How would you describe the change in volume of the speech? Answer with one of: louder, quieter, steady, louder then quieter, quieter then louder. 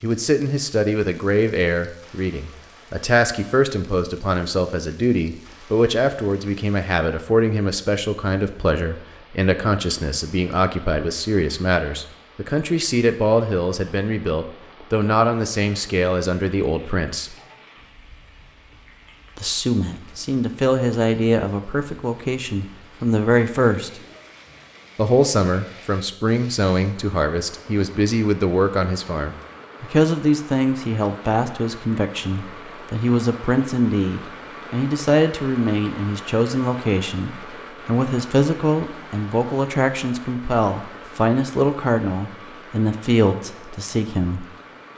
steady.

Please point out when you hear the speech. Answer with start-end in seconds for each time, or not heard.
0.0-17.4, 19.4-24.0, 24.9-44.5.